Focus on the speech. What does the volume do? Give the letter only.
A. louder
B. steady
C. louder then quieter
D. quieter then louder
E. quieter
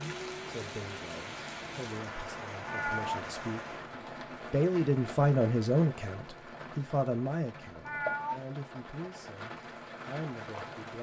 C.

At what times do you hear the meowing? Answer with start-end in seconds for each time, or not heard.
2.6-3.2, 7.8-8.4.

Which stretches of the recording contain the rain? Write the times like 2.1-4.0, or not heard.
0.0-10.9.